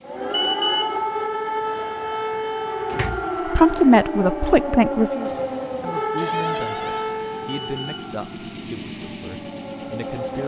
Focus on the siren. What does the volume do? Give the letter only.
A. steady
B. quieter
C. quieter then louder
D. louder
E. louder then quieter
B.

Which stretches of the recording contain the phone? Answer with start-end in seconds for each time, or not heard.
0.3-0.9, 7.5-8.1.